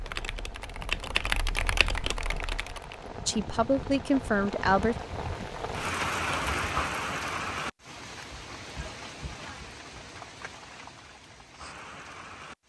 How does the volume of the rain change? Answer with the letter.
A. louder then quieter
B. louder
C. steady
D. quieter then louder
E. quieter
A.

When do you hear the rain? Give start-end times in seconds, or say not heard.
0.0-12.6.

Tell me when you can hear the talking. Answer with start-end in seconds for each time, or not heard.
3.2-5.0.